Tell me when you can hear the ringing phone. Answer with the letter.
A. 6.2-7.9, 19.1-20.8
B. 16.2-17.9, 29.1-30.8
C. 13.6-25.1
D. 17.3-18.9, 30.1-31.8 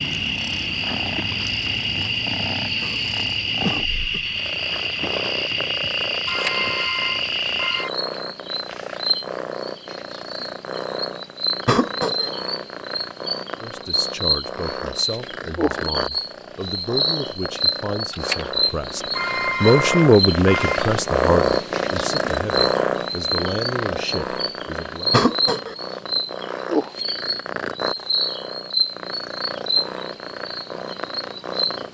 A.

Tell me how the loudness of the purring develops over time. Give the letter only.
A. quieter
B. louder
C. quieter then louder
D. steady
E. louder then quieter
E.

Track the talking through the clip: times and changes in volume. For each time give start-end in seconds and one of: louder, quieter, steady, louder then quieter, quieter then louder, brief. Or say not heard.
13.6-25.1 louder then quieter.